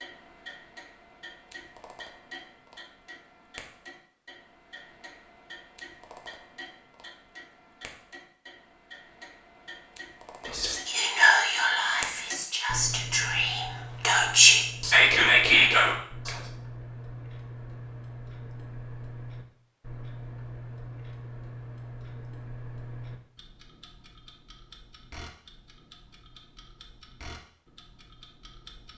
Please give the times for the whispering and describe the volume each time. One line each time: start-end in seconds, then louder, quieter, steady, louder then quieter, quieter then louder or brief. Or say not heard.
10.4-16.4 quieter then louder.